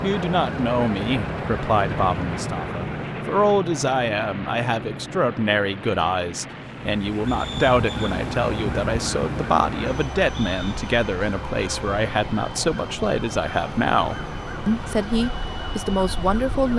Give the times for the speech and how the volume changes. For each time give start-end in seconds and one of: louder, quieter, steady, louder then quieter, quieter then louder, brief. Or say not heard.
0.0-16.7 steady.